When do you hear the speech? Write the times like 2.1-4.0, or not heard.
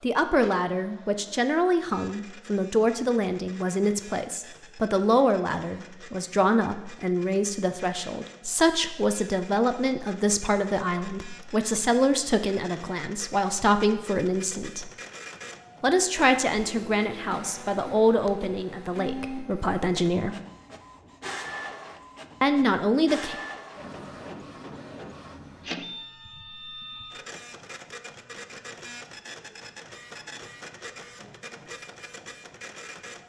0.0-14.9, 15.8-20.4, 22.4-23.4.